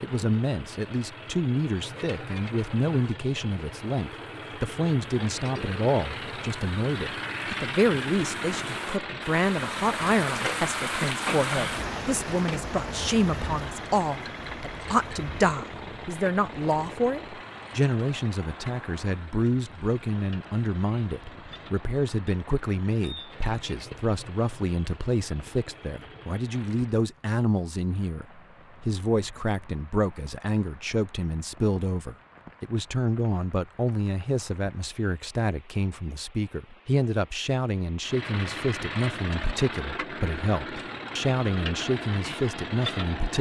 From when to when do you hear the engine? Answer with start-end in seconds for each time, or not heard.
0.0-27.0, 38.0-43.3.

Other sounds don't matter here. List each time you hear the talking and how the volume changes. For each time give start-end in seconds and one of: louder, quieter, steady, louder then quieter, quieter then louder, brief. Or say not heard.
0.0-43.3 steady.